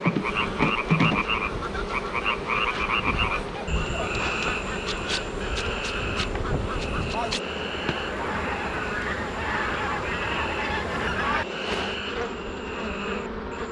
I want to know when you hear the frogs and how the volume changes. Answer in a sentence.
You can hear the frogs from 0.0 to 13.6 s, getting quieter.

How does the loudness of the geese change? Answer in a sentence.
The loudness of the geese goes up.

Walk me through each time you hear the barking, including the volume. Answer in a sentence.
You can't hear the barking here.